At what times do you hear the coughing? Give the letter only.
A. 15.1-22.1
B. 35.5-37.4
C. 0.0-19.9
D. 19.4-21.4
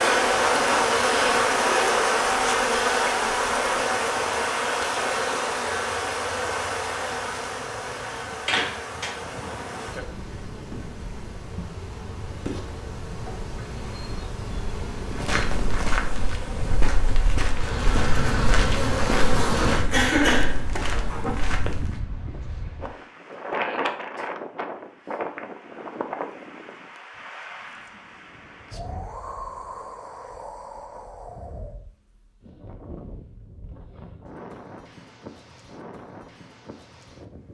D.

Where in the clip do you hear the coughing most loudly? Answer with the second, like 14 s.
20 s.